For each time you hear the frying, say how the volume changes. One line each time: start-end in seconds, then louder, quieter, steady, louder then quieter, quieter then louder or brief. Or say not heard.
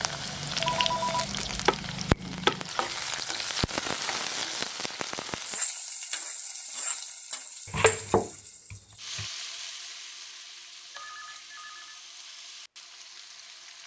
0.0-13.8 quieter.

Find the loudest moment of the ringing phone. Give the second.
1 s.